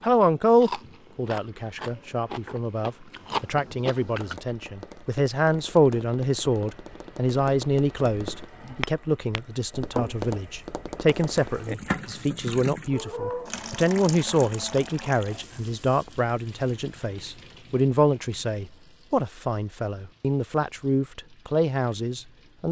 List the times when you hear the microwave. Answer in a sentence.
The microwave can't be heard in this clip.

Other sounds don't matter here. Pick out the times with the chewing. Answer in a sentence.
The chewing can be heard from 0.0 to 4.3 s.